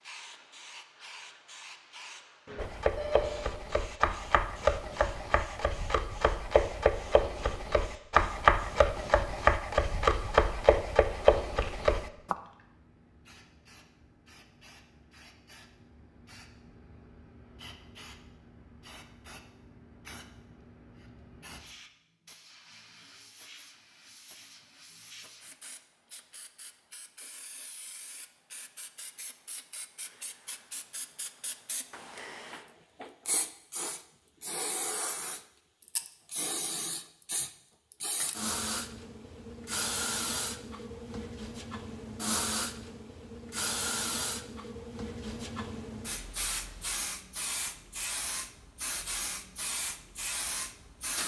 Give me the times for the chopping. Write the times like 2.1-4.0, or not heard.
2.5-12.3.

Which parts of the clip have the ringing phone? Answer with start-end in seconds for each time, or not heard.
2.5-3.5.